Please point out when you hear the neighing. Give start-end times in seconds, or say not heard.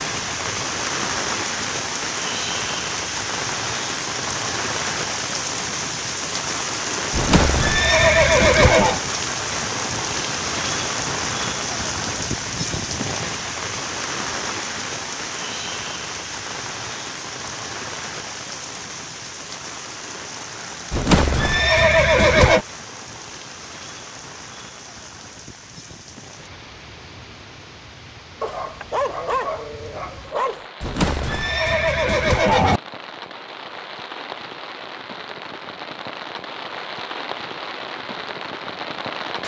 7.1-9.0, 20.9-22.6, 30.8-32.8.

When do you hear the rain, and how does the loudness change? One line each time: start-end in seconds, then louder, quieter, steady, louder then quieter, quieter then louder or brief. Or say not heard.
0.0-39.4 quieter then louder.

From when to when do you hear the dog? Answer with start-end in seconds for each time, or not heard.
28.4-30.6.